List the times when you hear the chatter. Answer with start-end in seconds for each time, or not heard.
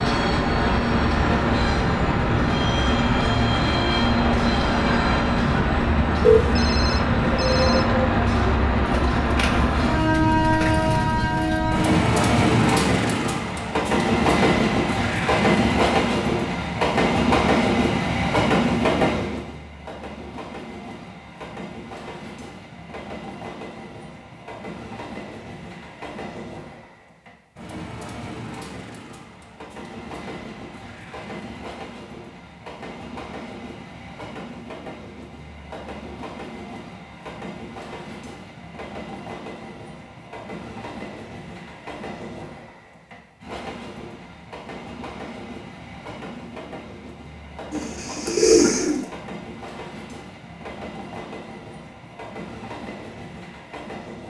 not heard.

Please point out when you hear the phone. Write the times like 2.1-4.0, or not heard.
6.2-8.1.